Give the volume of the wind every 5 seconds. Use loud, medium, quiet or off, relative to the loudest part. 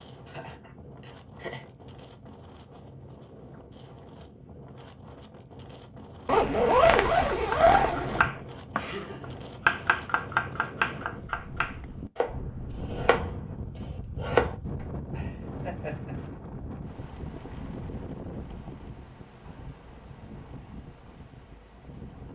medium, medium, loud, loud, medium.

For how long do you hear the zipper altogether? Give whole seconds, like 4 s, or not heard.
2 s.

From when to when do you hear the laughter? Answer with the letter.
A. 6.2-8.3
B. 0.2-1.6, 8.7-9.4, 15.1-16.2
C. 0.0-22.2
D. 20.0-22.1
B.